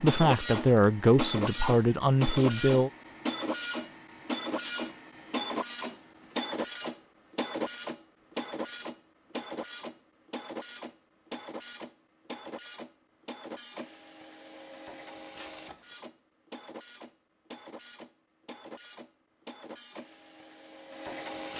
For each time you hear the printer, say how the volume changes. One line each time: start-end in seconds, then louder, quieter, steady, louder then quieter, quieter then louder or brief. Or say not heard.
0.0-21.5 quieter.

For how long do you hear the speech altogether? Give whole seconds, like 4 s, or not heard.
3 s.